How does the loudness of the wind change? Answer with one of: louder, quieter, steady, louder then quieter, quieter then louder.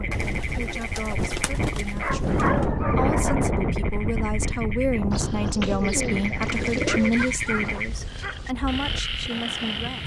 louder then quieter.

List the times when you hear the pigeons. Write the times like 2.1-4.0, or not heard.
0.1-2.5, 5.1-7.1.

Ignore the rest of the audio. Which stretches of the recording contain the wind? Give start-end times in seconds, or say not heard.
0.0-10.0.